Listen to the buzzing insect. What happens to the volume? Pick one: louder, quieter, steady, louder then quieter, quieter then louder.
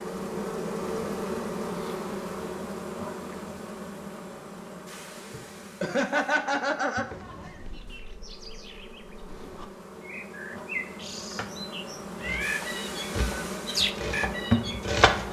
quieter then louder.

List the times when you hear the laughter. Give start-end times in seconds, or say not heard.
5.3-7.2.